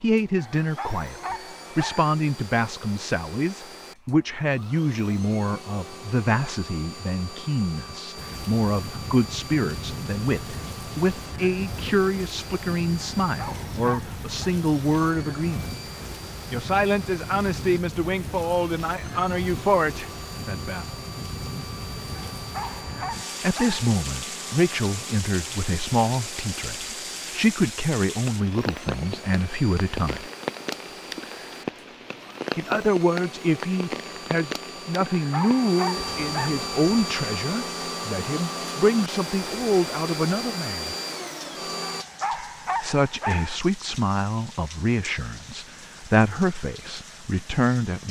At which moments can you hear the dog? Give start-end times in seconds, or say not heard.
0.3-2.1, 13.2-14.3, 22.1-23.8, 35.1-36.5, 41.8-43.6.